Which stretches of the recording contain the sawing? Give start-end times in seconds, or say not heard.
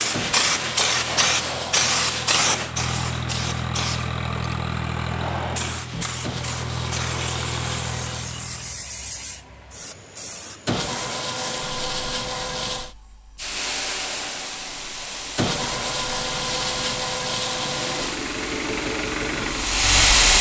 0.1-2.4, 6.2-8.3, 10.7-12.9, 15.3-18.2.